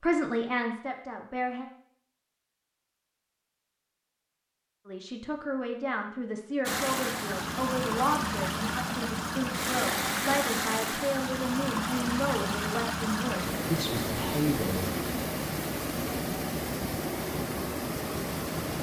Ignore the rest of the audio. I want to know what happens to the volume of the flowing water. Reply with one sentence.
The loudness of the flowing water stays about the same.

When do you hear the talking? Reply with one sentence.
You can hear the talking from 0.0 to 1.6 s and from 4.8 to 14.9 s.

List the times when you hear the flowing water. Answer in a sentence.
You can hear the flowing water from 6.7 to 18.7 s.